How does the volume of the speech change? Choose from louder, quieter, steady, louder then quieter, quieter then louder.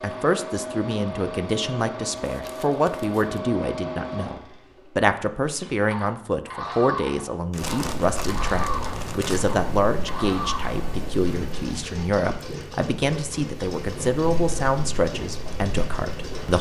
steady.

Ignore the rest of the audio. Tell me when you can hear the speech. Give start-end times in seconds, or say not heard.
0.0-16.5.